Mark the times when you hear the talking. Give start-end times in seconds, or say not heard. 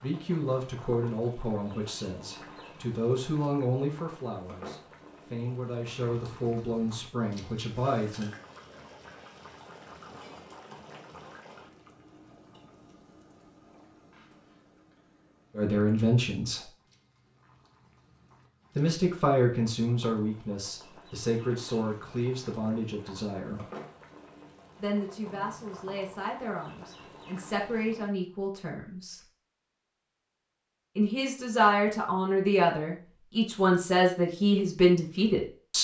0.0-8.3, 15.6-16.6, 18.8-23.6, 24.8-29.2, 30.9-35.7.